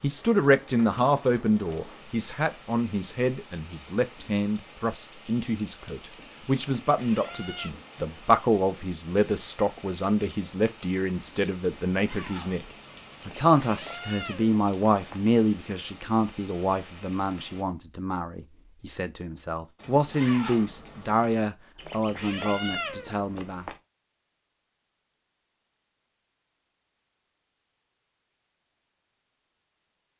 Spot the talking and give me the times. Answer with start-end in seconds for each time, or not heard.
0.0-12.7, 13.2-23.6.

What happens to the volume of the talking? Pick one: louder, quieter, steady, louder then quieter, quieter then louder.
steady.